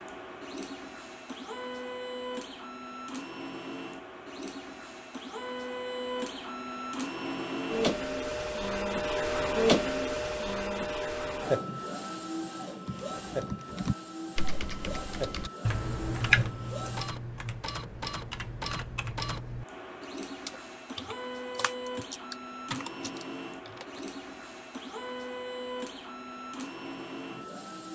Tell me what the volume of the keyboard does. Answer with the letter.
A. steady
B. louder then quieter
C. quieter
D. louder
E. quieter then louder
B.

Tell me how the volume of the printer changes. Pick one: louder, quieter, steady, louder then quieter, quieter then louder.
louder then quieter.